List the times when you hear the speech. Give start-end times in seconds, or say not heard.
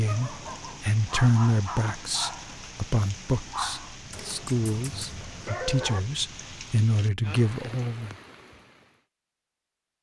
0.0-8.2.